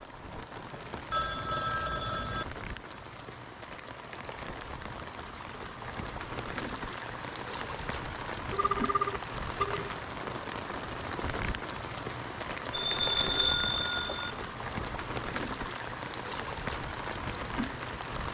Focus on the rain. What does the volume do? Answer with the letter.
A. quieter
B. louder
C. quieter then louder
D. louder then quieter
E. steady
B.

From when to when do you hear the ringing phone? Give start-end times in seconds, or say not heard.
1.1-2.5, 8.5-9.9, 12.7-14.3.